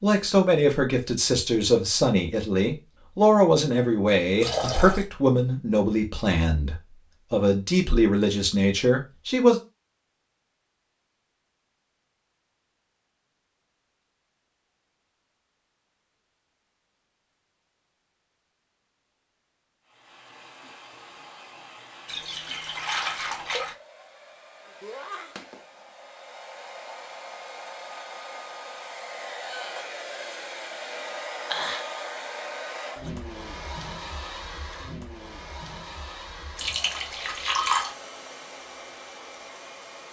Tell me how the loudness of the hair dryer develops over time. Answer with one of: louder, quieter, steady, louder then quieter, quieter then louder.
louder then quieter.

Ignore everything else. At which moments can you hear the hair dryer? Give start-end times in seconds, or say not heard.
19.9-40.0.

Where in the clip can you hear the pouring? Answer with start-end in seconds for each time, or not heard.
4.4-5.0, 22.1-23.8, 36.5-37.9.